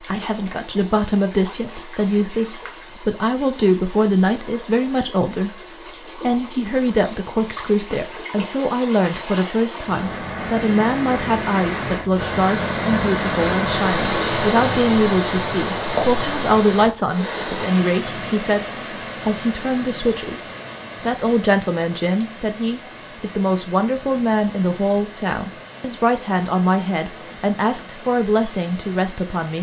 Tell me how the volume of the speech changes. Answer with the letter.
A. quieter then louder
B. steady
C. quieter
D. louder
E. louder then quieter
B.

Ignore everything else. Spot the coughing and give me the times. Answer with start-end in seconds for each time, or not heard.
not heard.